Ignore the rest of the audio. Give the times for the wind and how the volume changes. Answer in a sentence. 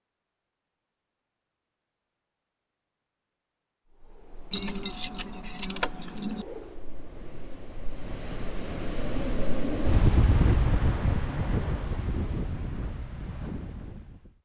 You can hear the wind from 3.9 to 14.3 s, getting louder then quieter.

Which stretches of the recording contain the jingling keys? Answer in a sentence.
The jingling keys can be heard from 4.5 to 6.5 s.